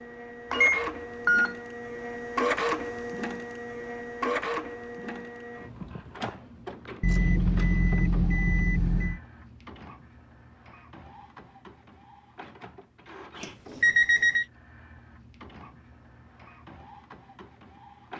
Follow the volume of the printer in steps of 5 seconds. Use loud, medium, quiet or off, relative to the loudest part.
loud, medium, quiet, quiet.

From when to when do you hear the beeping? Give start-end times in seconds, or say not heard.
0.5-1.6, 7.0-9.2, 13.4-14.4.